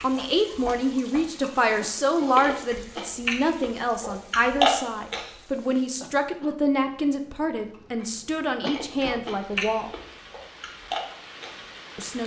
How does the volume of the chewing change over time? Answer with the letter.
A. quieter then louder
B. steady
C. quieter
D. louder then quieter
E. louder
D.